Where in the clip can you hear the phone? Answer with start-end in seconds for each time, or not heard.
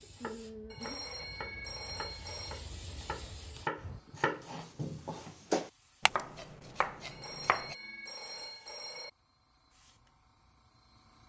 0.7-2.6, 7.1-9.1.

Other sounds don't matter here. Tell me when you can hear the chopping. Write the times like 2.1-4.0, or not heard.
0.0-7.8.